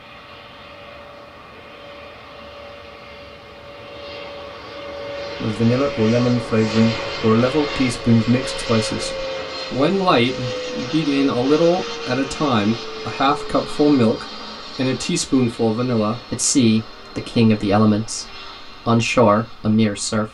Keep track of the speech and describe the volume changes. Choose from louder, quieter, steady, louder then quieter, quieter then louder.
steady.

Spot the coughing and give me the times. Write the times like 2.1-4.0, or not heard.
not heard.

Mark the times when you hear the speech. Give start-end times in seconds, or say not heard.
5.4-20.2.